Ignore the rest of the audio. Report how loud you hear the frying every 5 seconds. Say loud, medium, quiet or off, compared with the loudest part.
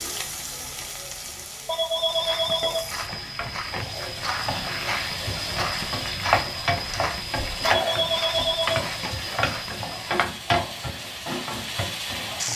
medium, loud, loud.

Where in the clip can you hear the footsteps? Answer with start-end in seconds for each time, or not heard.
1.9-10.3.